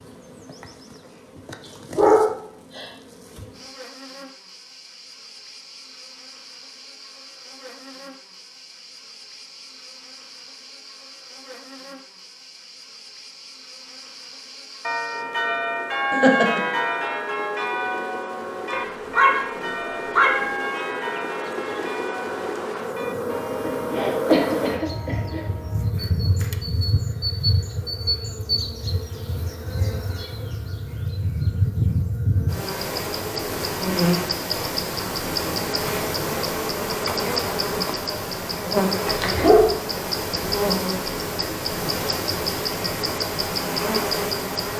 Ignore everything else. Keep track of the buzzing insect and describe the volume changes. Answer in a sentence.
The volume of the buzzing insect goes up.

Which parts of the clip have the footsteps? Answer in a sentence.
The footsteps can't be heard in this clip.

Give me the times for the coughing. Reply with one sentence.
You can hear the coughing from 16.1 to 16.6 s and from 23.6 to 25.4 s.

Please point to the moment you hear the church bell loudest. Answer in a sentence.
The loudest moment of the church bell is at 16 seconds.